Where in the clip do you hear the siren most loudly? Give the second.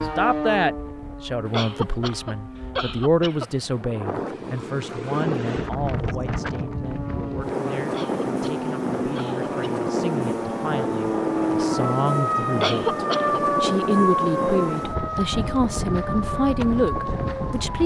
14 s.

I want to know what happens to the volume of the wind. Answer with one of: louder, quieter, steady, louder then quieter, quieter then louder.
louder.